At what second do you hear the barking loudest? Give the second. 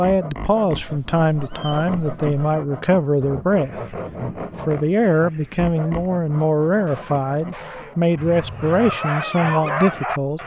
10 s.